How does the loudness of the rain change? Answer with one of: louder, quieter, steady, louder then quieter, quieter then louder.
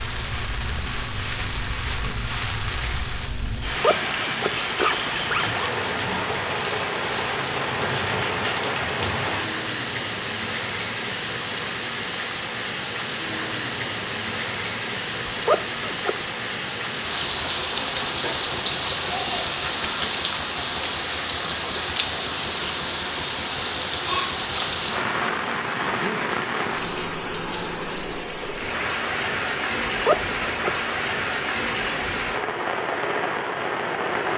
steady.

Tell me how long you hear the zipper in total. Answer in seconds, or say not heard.
4 s.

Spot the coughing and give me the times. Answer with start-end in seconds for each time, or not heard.
not heard.